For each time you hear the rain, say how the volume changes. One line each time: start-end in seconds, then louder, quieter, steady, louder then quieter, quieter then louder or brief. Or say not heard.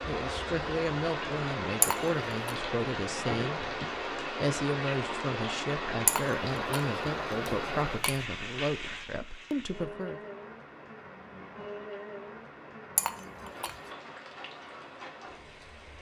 0.0-15.9 quieter.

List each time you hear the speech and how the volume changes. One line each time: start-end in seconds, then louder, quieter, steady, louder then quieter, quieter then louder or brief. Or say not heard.
0.1-10.2 steady.